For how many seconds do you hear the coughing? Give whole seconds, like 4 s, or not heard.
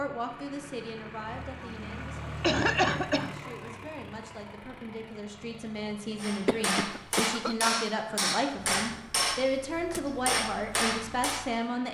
3 s.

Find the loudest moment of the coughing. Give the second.
3 s.